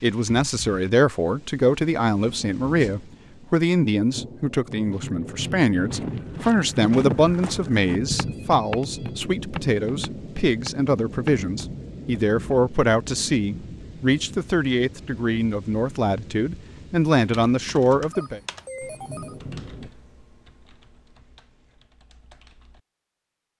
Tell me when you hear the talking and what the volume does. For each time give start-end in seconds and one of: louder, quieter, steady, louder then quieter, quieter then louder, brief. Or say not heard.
0.0-18.4 steady.